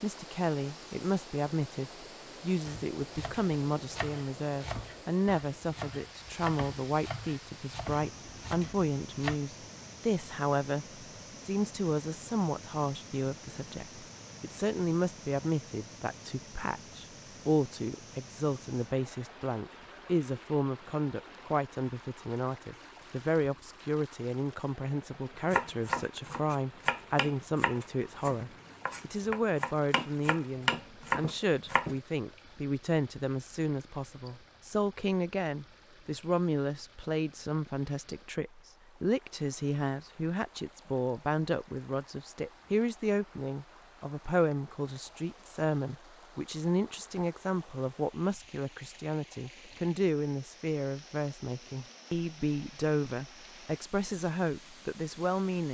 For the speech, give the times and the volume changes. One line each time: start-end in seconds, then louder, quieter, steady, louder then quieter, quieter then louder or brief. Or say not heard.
0.0-55.7 steady.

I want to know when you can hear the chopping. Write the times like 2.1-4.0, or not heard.
2.6-9.3, 25.5-31.9.